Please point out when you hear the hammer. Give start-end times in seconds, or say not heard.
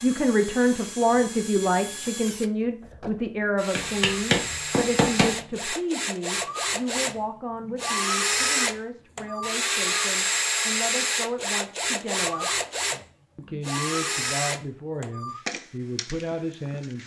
3.8-5.8.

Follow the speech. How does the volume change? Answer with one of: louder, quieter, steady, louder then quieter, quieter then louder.
quieter.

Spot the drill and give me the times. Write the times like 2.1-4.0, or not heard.
0.0-17.0.